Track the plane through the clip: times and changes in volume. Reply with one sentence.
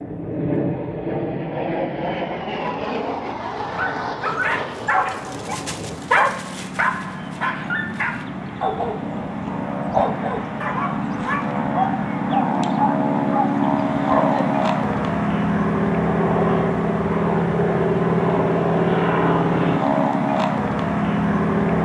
The plane can be heard from 0.0 to 21.8 s, getting quieter then louder.